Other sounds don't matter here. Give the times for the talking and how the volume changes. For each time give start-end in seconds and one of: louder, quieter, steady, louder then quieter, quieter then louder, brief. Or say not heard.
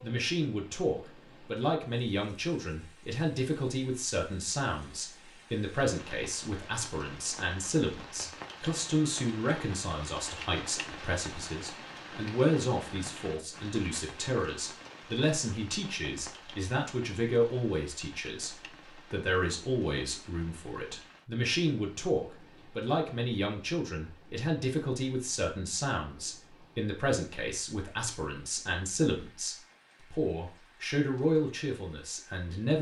0.0-32.7 steady.